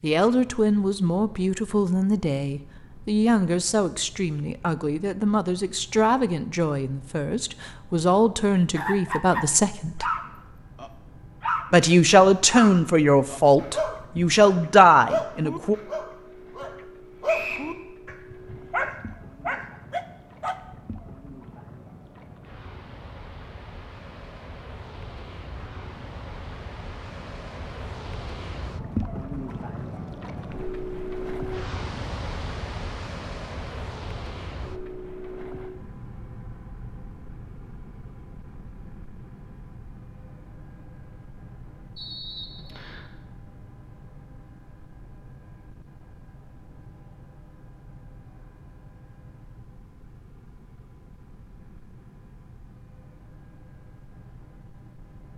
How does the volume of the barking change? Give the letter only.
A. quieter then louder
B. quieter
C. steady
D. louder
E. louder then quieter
C.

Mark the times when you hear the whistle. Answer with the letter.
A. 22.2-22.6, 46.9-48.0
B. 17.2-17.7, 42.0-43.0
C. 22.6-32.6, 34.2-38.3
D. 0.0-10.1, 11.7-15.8
B.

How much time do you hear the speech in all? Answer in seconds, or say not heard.
14 s.